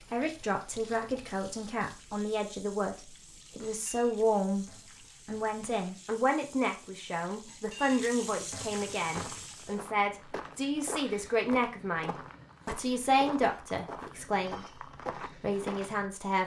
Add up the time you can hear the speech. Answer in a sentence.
You can hear the speech for 16 seconds altogether.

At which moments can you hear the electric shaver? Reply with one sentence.
You can't hear the electric shaver here.